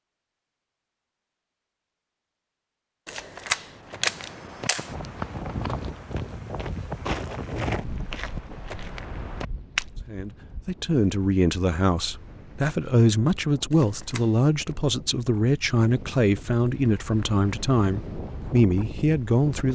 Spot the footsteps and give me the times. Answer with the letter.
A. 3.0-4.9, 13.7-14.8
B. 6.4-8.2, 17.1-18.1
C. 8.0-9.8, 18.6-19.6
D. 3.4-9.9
D.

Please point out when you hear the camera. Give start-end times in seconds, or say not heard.
3.0-4.9, 13.7-14.8.